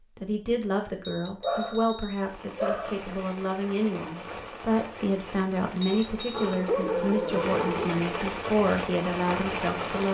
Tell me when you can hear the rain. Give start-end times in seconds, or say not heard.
2.1-10.0.